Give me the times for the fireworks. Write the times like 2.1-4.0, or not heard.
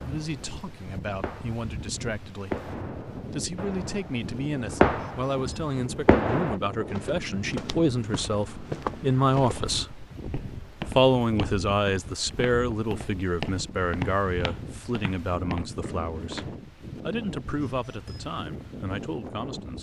0.0-6.5.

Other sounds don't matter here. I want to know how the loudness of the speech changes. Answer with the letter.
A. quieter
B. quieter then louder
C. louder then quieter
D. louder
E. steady
C.